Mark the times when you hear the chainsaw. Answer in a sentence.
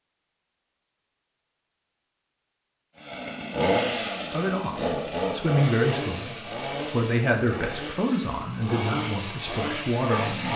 The chainsaw can be heard from 3.0 to 10.5 s.